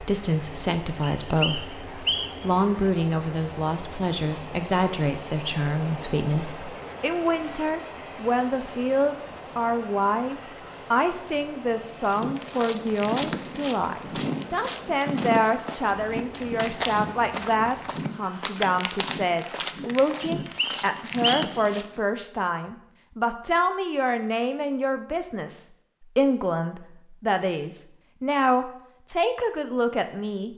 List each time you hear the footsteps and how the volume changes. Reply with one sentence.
You can hear the footsteps from 12.0 to 22.0 s, at a steady volume.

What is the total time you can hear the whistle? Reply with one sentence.
You can hear the whistle for 3 seconds altogether.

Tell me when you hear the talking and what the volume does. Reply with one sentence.
You can hear the talking from 0.0 to 30.5 s, at a steady volume.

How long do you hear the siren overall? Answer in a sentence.
You can't hear the siren here.